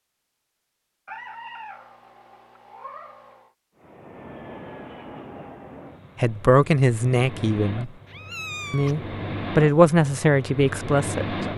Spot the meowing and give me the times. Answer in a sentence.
You can hear the meowing from 1.1 to 3.5 s and from 8.1 to 8.9 s.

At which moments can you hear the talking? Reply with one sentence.
The talking can be heard from 6.2 to 7.9 s and from 8.7 to 11.3 s.